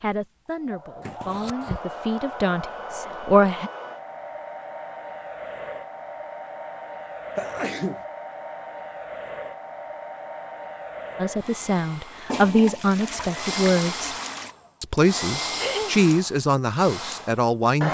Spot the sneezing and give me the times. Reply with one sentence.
You can hear the sneezing from 1.0 to 1.8 s, from 7.3 to 8.0 s and from 15.5 to 16.0 s.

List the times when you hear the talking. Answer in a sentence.
You can hear the talking from 0.0 to 3.7 s, from 11.2 to 14.2 s and from 14.8 to 17.8 s.